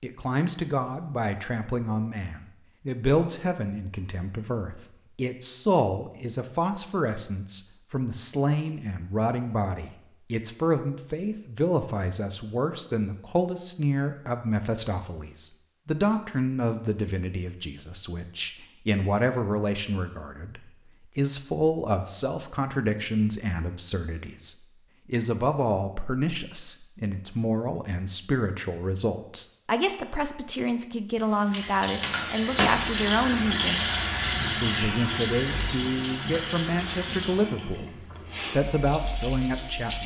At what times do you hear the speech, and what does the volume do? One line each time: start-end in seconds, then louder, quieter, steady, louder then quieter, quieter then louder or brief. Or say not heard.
0.0-33.9 steady
34.6-40.0 steady.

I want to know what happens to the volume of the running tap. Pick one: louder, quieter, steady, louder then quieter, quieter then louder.
quieter.